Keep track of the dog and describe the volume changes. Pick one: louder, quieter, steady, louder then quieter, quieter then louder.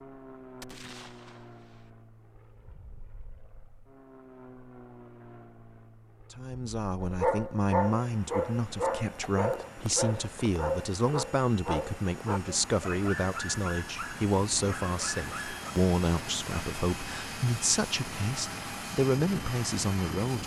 quieter.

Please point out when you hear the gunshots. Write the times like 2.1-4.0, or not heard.
0.6-1.9.